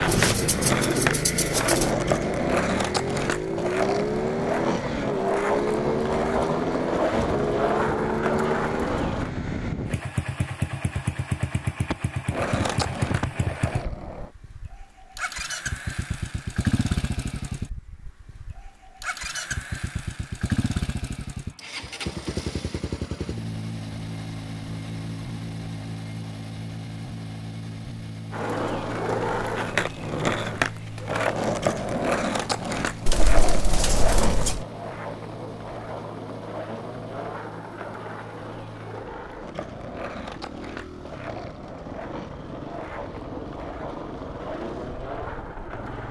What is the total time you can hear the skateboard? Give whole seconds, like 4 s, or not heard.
29 s.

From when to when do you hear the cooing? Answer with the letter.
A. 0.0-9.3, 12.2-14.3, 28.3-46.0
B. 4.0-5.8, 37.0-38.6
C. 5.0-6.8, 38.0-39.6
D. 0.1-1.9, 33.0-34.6
D.